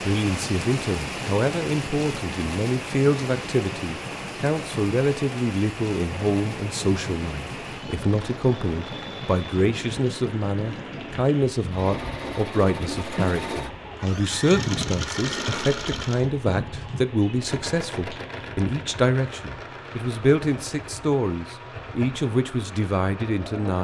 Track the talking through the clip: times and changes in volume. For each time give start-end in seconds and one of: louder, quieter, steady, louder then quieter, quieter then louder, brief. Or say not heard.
0.0-23.7 steady.